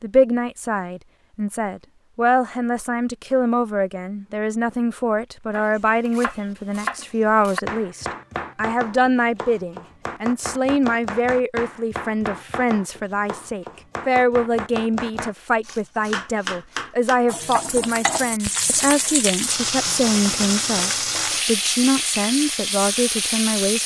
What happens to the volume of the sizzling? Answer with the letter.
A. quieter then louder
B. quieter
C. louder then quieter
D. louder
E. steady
E.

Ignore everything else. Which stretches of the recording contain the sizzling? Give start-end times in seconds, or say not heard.
17.2-23.8.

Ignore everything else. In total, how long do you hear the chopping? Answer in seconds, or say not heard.
12 s.